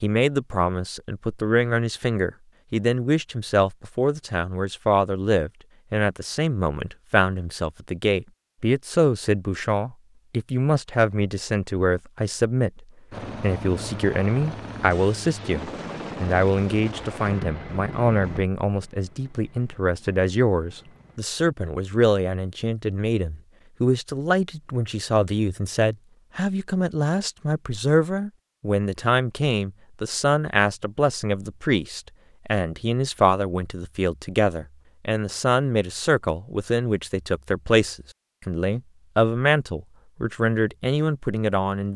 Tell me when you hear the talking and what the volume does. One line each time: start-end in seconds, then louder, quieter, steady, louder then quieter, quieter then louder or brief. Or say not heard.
0.0-41.9 steady.